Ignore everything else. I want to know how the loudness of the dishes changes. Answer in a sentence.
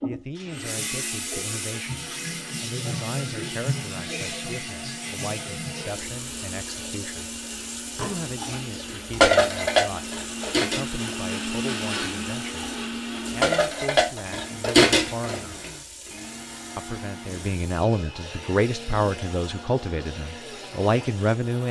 The volume of the dishes goes down, then up.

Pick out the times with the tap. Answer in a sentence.
You can hear the tap from 0.0 to 21.6 s.